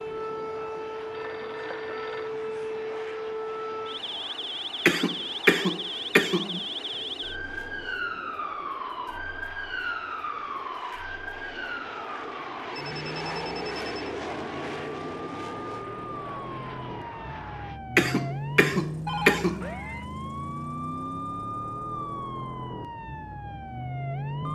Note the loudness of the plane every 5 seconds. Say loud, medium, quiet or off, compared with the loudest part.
medium, medium, loud, loud, off.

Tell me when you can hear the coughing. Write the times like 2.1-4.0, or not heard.
4.8-6.6, 17.9-19.7.